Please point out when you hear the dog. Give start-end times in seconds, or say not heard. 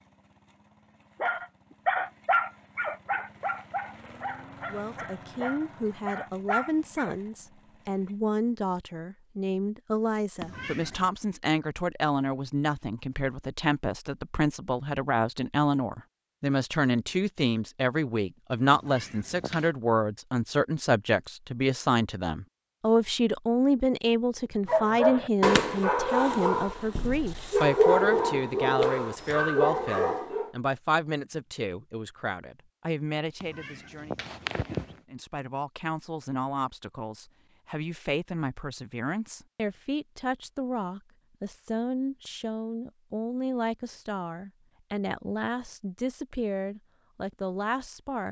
1.2-7.2, 24.6-30.5.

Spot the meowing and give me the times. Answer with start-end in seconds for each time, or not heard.
10.4-11.1, 18.7-19.7, 33.4-35.0.